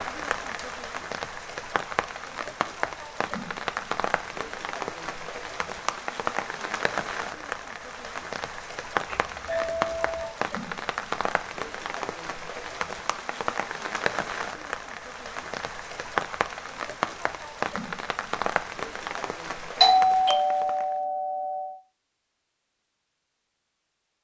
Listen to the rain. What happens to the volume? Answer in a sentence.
The volume of the rain stays about the same.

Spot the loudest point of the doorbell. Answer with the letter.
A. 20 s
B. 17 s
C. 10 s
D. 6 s
A.